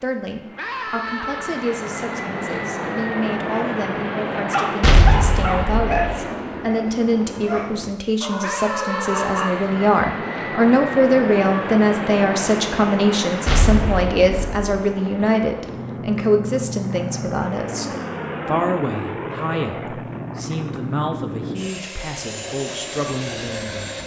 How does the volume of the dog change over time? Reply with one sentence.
The loudness of the dog goes down, then up.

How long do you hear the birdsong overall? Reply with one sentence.
The birdsong can't be heard in this clip.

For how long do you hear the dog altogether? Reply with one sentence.
The dog can be heard for 5 seconds in total.